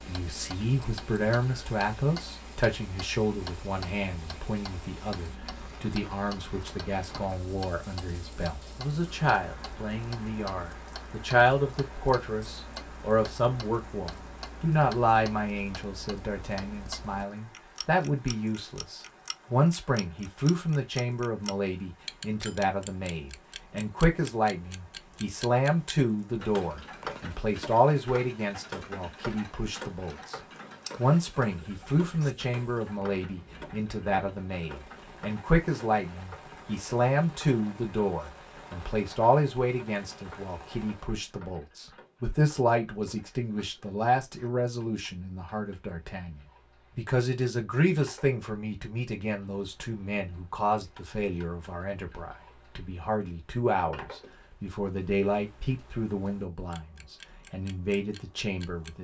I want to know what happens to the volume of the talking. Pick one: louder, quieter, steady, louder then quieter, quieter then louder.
steady.